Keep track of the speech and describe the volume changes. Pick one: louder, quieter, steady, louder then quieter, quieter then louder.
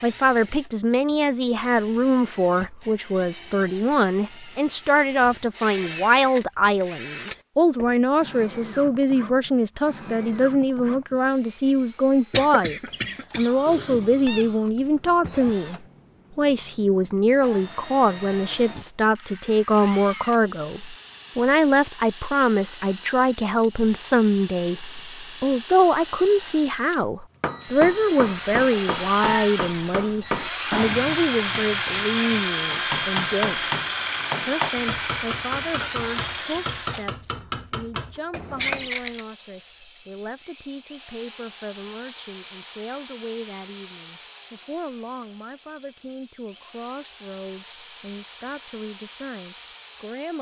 quieter.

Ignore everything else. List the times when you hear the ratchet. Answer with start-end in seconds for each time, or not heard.
not heard.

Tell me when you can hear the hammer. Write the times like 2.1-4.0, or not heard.
27.4-38.9.